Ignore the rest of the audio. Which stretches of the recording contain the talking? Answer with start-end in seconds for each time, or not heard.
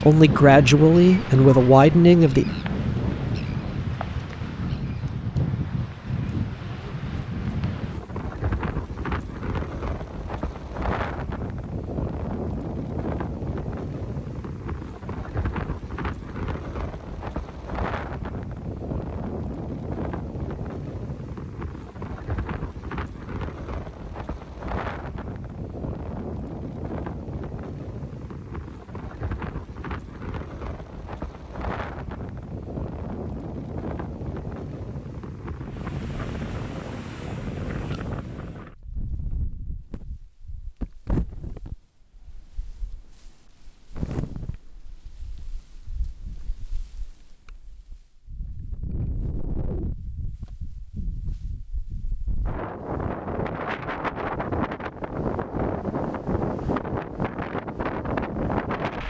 0.0-2.5.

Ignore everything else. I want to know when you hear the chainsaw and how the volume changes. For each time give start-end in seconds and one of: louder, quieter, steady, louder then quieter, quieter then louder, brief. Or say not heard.
not heard.